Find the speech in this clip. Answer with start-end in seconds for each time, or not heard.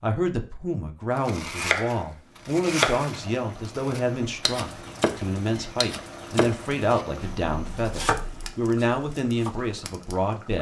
0.0-10.5.